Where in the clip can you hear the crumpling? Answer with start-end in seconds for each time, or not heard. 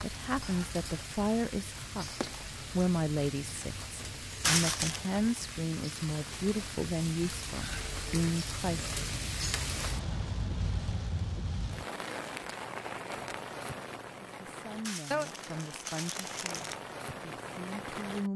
4.4-5.0, 14.8-16.8.